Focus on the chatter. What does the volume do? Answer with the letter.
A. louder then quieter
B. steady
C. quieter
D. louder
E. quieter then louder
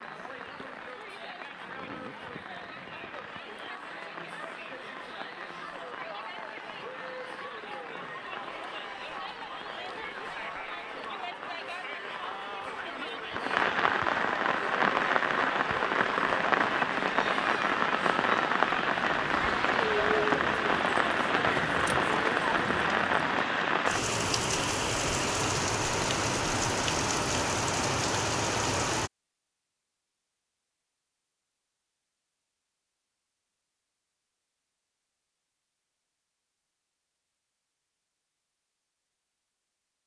D.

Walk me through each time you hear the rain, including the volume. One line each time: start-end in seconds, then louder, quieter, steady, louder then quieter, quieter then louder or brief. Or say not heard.
0.0-29.1 louder.